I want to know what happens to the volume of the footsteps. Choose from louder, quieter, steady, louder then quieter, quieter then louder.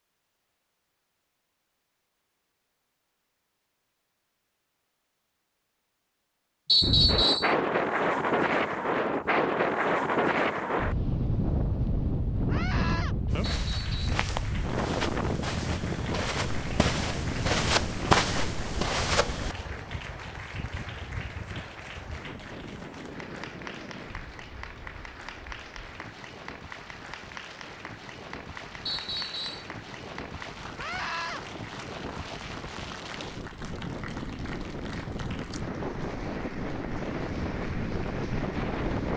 louder.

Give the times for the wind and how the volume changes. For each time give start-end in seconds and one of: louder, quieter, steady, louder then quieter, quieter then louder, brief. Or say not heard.
6.8-39.1 quieter then louder.